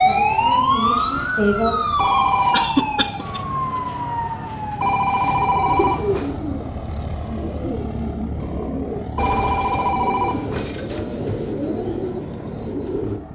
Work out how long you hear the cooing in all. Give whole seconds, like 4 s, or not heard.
8 s.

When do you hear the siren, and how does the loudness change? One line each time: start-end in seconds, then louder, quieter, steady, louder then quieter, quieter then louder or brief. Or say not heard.
0.0-6.1 quieter.